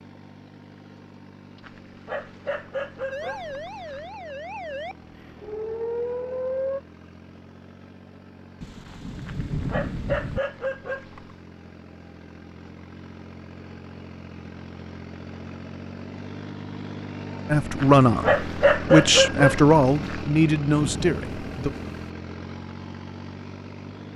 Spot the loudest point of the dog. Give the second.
19 s.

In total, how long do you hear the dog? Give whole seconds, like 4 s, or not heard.
7 s.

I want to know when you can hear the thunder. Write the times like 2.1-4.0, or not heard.
8.6-10.4, 20.8-22.1.